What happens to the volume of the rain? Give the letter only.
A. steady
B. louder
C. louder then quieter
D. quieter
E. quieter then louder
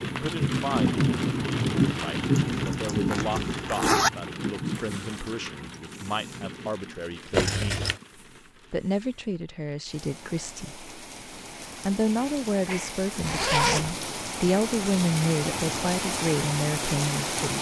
E.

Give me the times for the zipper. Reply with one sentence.
The zipper can be heard from 2.4 to 4.1 s, from 7.3 to 8.0 s and from 13.2 to 13.9 s.